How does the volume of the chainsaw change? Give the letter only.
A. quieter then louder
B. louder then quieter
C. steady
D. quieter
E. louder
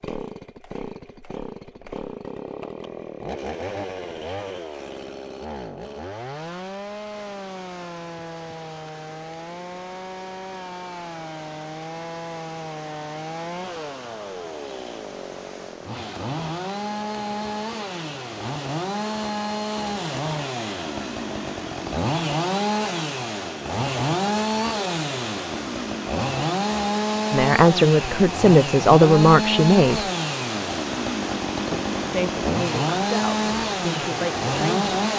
E.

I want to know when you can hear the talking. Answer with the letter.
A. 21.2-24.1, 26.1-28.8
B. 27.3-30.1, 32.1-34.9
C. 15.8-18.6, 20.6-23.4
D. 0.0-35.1
B.